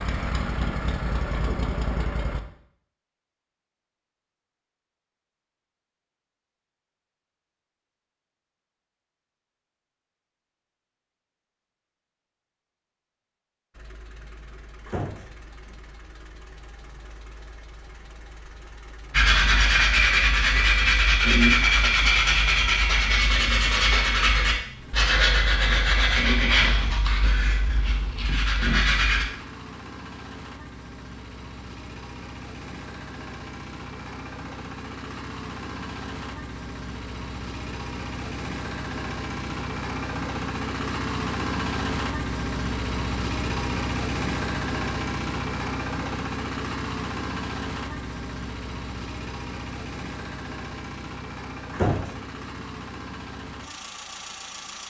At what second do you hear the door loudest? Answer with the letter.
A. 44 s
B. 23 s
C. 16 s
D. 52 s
D.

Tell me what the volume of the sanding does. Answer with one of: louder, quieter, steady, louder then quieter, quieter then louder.
quieter.